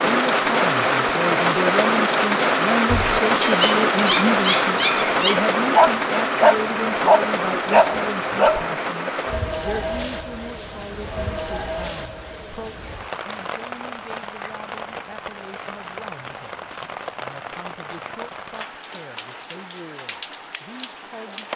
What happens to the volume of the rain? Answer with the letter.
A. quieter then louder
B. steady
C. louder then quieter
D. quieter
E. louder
D.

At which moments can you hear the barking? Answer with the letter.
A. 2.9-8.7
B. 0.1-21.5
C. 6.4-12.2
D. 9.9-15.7
A.